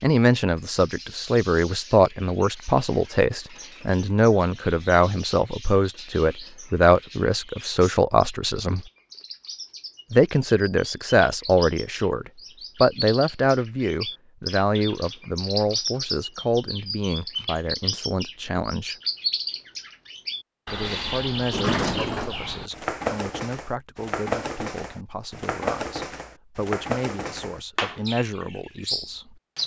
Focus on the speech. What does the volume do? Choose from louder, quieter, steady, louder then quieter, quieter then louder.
quieter.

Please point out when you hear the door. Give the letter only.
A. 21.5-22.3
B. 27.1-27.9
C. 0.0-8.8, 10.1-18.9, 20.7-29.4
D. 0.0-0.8
A.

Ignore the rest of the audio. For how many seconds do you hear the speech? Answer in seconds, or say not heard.
26 s.